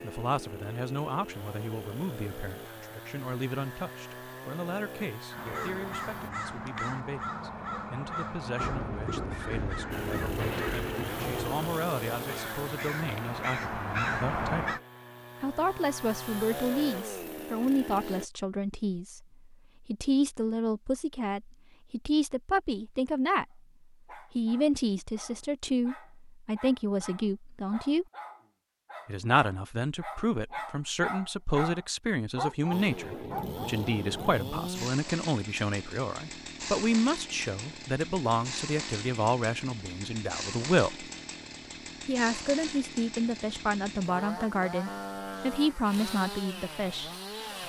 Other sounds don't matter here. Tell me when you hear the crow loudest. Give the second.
14 s.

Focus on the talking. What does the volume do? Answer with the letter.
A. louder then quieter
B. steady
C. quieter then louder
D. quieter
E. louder
E.